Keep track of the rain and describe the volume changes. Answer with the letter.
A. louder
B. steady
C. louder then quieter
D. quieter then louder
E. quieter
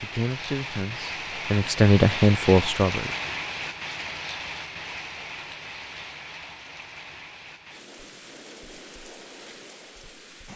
E.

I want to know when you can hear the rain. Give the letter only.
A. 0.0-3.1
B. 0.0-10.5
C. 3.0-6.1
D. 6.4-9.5
B.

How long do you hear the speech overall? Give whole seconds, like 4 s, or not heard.
3 s.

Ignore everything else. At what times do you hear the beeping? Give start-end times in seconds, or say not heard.
not heard.